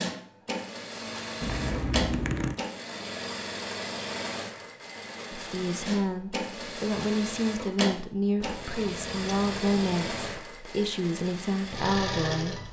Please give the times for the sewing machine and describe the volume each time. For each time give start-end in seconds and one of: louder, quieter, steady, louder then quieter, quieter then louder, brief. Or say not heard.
0.0-12.6 steady.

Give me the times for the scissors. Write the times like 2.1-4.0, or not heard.
1.4-2.5, 8.4-10.4.